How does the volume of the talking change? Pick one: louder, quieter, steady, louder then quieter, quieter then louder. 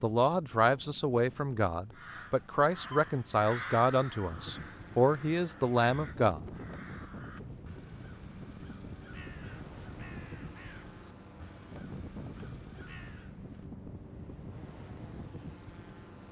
steady.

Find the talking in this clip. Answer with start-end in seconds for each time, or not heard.
0.0-6.5.